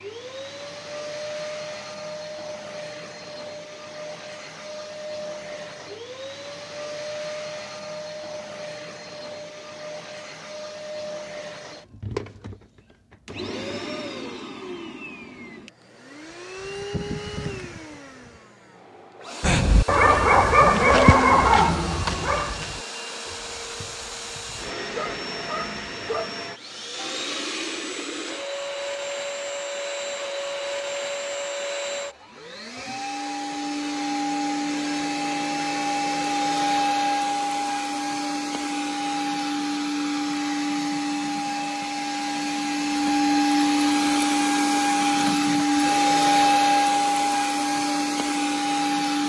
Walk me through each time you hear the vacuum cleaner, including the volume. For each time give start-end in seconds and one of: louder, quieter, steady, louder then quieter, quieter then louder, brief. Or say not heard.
0.0-49.2 louder.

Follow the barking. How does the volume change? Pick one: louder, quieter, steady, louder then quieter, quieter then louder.
quieter then louder.